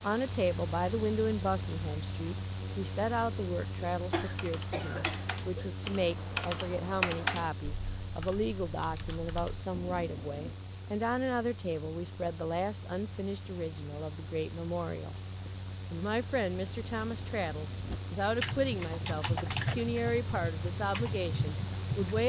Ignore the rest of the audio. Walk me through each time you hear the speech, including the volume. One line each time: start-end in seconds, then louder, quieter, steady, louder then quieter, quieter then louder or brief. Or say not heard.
0.0-22.2 steady.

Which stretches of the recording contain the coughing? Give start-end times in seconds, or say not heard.
4.1-5.7.